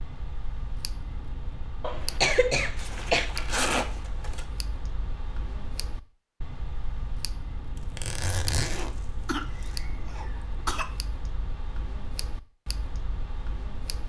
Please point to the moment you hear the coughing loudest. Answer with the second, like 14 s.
2 s.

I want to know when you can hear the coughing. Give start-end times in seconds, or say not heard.
1.8-3.3, 9.2-10.8.